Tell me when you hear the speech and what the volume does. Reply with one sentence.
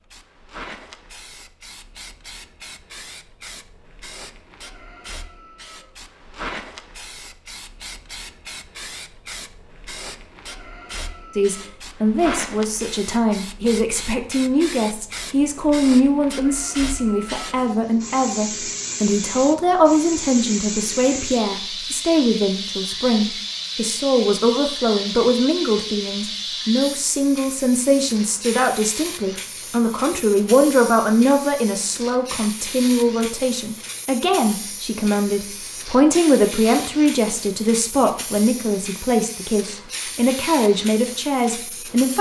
You can hear the speech from 11.3 to 42.1 s, at a steady volume.